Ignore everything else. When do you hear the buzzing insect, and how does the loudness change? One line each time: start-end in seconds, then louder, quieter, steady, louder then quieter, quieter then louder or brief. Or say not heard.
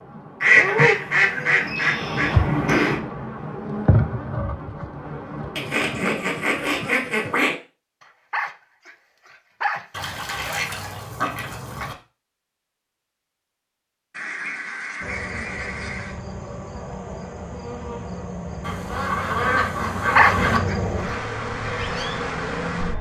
0.0-6.9 quieter
15.0-22.9 louder.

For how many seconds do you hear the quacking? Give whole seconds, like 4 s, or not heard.
11 s.